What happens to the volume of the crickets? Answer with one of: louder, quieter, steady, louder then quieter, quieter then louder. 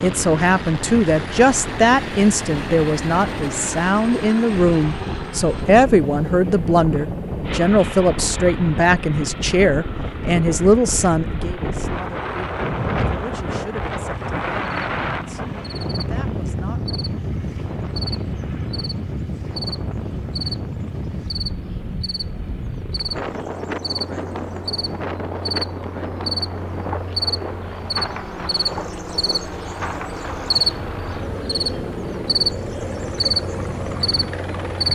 louder.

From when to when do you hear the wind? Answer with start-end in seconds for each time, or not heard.
0.0-34.9.